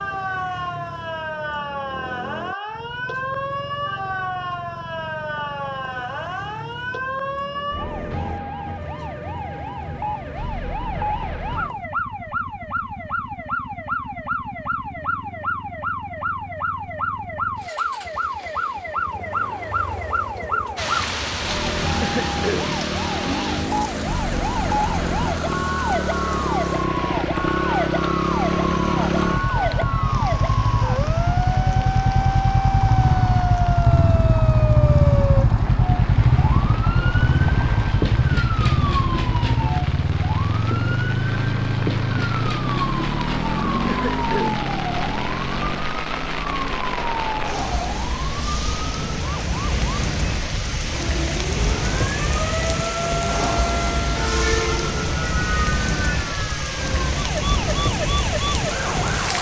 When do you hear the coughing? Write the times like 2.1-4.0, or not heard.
21.8-22.8, 43.7-44.6.